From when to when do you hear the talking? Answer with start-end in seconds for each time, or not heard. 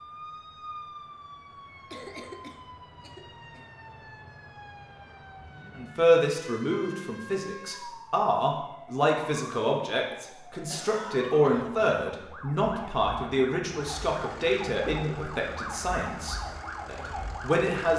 5.8-17.9.